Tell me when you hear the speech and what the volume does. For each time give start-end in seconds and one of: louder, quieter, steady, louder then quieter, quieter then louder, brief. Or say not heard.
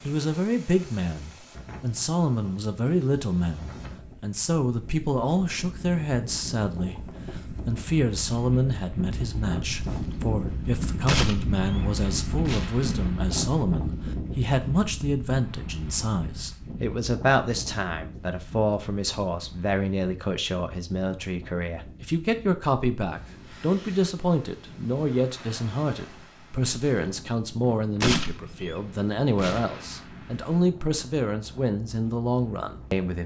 0.0-33.2 steady.